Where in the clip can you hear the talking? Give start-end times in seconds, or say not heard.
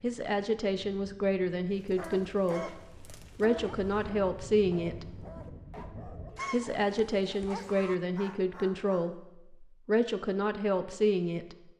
0.0-5.2, 6.5-11.6.